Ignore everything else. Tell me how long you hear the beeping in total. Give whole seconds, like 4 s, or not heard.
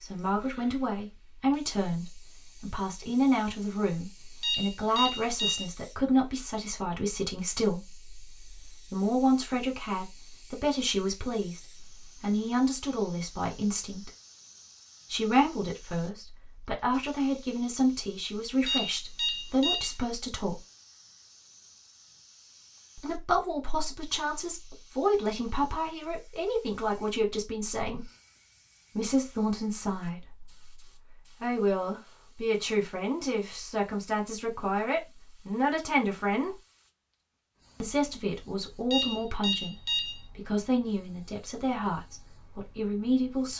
4 s.